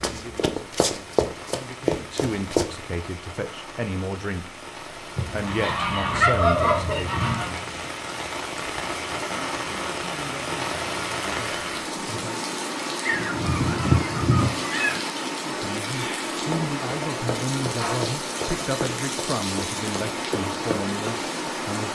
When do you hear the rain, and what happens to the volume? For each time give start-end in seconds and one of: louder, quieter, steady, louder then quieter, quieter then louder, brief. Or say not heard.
0.0-21.9 louder.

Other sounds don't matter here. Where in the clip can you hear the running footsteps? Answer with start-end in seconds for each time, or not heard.
0.0-2.8, 16.4-21.2.